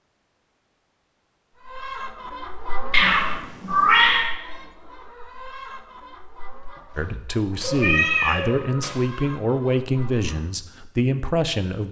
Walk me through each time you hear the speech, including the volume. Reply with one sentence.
The speech can be heard from 7.0 to 11.8 s, at a steady volume.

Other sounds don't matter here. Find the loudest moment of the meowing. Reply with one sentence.
The volume of the meowing peaks at 4 seconds.